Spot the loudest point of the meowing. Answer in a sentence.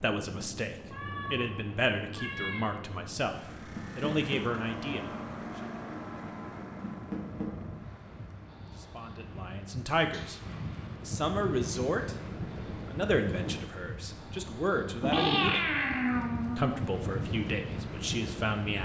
The volume of the meowing peaks at 15 seconds.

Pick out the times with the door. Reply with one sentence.
You can hear the door from 3.8 to 4.4 s, from 6.8 to 7.5 s and from 14.8 to 15.4 s.